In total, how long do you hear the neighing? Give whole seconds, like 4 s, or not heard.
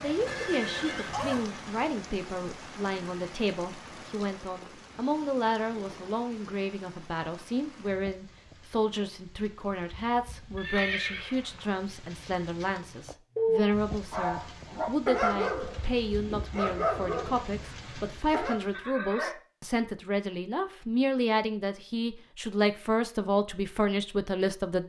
3 s.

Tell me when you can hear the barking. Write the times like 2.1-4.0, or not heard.
13.3-18.6.